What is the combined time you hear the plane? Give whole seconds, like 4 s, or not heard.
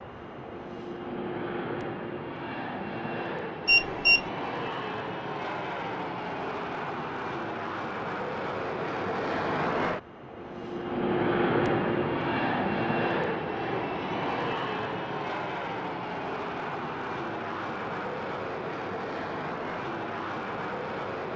21 s.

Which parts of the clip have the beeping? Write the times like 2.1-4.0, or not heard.
3.6-4.2.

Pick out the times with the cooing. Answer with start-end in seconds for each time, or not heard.
not heard.